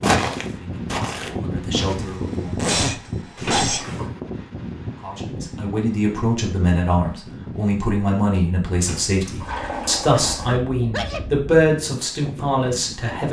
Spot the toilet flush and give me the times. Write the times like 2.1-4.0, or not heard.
3.4-4.1, 8.8-10.6.